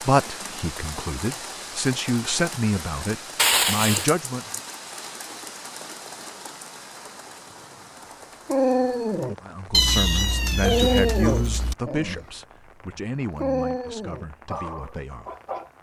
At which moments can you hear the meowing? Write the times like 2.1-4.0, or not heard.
3.4-4.1, 9.7-11.8.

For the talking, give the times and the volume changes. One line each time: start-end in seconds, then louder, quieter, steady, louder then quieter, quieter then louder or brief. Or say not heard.
0.0-4.5 louder
9.4-15.4 quieter.